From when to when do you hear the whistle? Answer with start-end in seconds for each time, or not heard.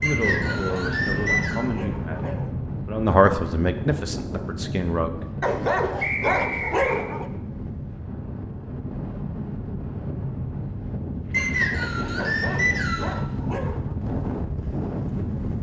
0.0-1.6, 6.0-7.0, 11.3-13.2.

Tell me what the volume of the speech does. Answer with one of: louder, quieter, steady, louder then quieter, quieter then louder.
louder then quieter.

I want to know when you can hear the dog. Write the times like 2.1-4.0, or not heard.
0.5-2.5, 5.4-7.3, 12.2-13.9.